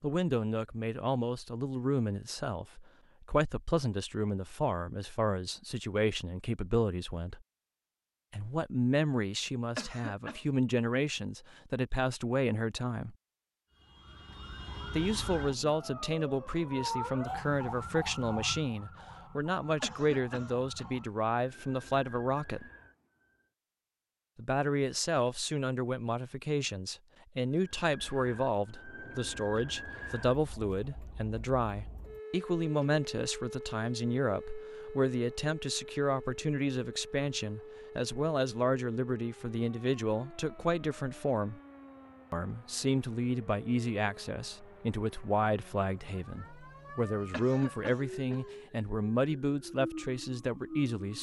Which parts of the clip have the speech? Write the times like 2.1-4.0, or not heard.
0.0-7.4, 8.3-13.2, 14.9-22.6, 24.4-41.6, 42.3-51.1.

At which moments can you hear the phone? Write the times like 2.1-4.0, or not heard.
not heard.